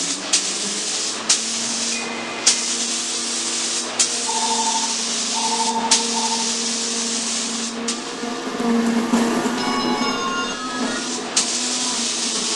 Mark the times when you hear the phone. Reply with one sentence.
You can hear the phone from 1.6 to 2.5 s, from 4.2 to 6.5 s and from 9.6 to 11.0 s.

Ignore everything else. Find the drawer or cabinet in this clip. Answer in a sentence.
You can't hear the drawer or cabinet here.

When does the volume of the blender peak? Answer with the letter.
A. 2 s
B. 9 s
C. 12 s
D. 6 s
B.